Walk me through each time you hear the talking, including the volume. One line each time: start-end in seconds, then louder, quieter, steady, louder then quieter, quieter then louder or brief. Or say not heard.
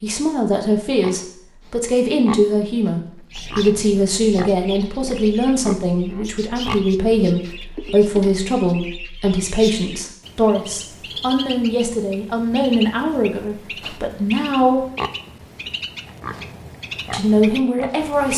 0.0-14.8 steady
17.1-18.3 brief.